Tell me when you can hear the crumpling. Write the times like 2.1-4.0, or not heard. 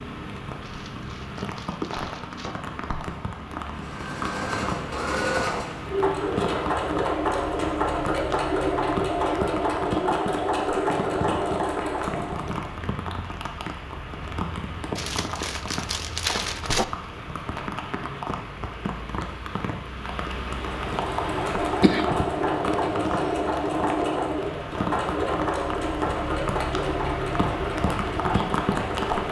0.6-2.5, 14.9-16.9.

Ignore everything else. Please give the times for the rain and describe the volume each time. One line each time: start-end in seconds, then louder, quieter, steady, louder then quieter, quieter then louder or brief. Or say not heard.
0.0-29.2 steady.